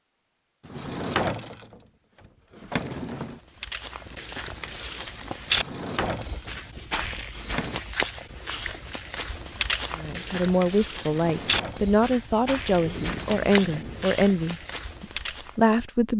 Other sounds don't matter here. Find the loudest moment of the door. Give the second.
1 s.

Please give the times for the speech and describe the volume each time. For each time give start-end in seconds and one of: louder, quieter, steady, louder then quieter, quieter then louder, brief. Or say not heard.
9.9-16.1 steady.